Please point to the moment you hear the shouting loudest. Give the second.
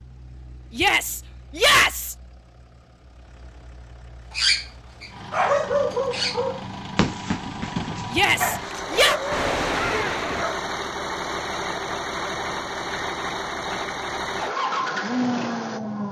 2 s.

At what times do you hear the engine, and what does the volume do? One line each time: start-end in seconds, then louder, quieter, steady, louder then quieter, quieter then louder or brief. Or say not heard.
0.0-16.0 louder.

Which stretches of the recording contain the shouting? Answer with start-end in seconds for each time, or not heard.
0.7-2.1, 8.1-9.2.